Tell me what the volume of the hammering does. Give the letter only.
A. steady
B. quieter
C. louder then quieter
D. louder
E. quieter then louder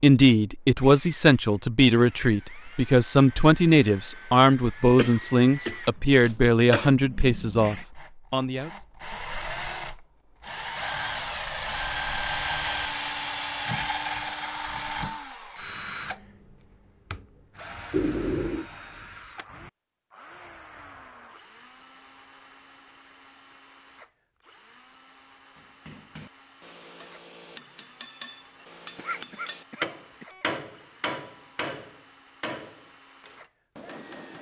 C.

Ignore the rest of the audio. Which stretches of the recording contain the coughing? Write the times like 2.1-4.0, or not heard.
5.0-7.0, 17.9-18.6, 28.9-30.4.